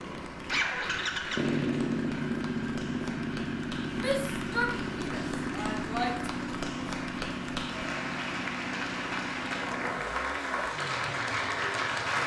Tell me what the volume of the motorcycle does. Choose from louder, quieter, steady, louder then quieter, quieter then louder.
quieter.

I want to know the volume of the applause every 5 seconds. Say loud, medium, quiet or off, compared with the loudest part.
quiet, medium, loud.